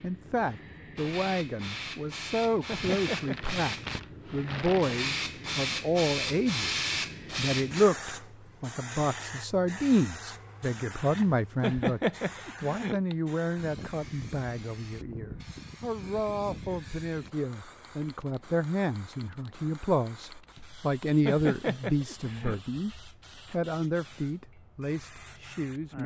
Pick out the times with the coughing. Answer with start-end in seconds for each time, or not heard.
2.6-3.4, 11.6-13.0, 21.2-22.6.